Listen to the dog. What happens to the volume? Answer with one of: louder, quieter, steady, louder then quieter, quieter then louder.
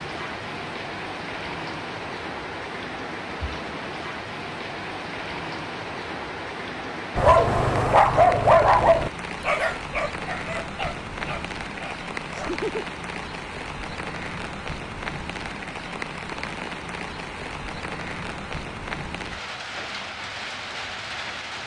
quieter.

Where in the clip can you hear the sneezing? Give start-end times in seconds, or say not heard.
not heard.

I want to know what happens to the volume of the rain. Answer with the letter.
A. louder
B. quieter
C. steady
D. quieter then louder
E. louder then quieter
C.